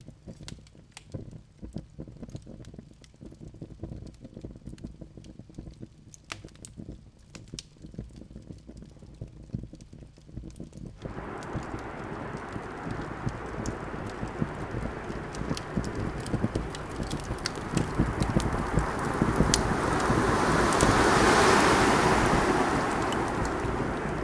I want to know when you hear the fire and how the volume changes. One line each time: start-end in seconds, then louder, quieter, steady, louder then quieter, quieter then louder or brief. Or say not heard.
0.0-24.2 louder.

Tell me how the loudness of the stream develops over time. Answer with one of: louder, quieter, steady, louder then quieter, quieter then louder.
louder.